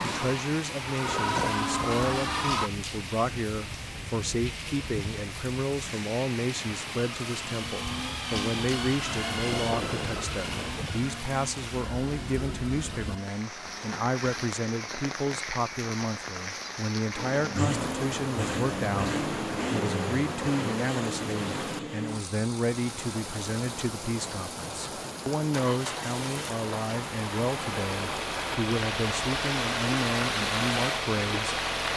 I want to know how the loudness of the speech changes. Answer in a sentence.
The loudness of the speech stays about the same.